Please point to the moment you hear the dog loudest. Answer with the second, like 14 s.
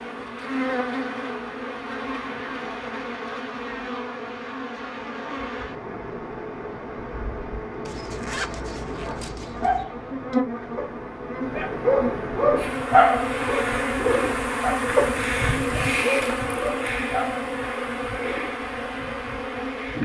13 s.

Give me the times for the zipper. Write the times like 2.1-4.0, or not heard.
7.8-9.8.